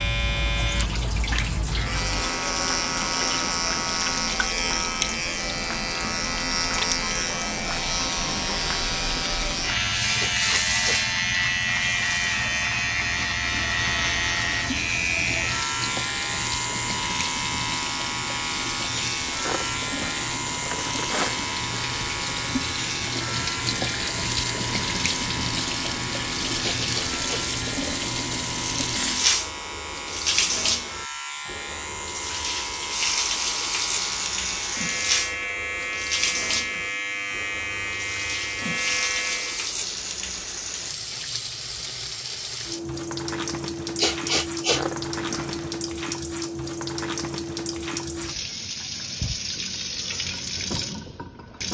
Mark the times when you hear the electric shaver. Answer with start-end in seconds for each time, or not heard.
0.0-39.8.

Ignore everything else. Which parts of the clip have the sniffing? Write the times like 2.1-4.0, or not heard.
10.2-11.0, 26.6-27.4, 44.0-44.9.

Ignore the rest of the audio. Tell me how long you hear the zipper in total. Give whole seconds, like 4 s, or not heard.
3 s.